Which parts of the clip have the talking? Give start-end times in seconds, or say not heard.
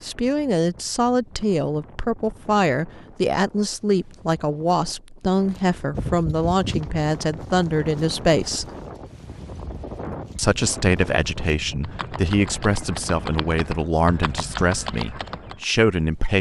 0.0-8.7, 10.3-16.3.